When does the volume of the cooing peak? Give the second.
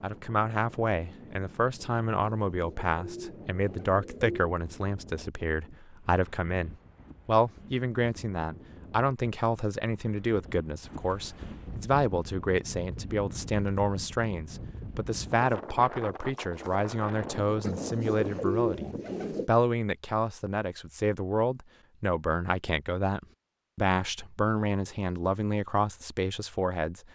19 s.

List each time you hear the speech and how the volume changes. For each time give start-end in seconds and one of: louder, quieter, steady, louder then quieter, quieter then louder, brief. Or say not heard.
0.0-27.0 steady.